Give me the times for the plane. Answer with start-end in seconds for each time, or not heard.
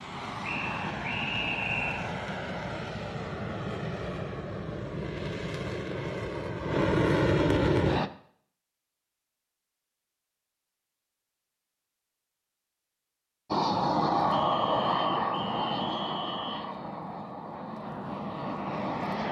0.0-8.1, 13.5-19.2.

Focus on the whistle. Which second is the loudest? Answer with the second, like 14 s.
2 s.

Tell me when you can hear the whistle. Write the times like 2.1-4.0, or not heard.
0.4-2.0, 14.3-16.6.